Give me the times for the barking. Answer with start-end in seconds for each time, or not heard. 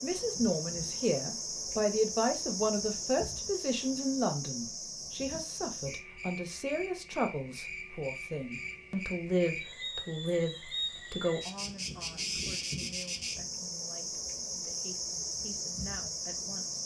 not heard.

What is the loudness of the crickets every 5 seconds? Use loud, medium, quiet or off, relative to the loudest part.
loud, medium, loud, loud.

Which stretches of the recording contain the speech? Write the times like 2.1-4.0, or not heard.
0.0-16.8.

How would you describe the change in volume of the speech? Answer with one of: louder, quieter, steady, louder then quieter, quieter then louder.
quieter.